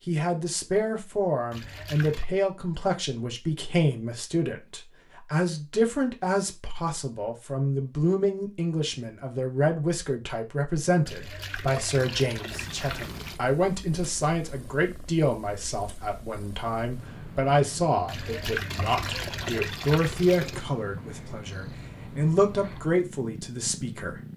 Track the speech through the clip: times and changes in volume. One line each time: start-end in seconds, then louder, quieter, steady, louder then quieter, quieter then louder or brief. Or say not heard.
0.1-24.2 steady.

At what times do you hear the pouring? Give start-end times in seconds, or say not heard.
1.5-2.3, 11.1-13.4, 18.1-20.6.